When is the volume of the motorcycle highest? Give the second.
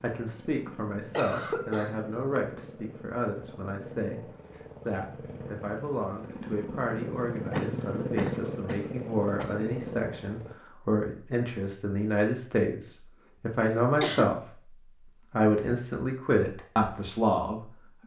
8 s.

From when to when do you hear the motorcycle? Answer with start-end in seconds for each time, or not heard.
0.2-10.6.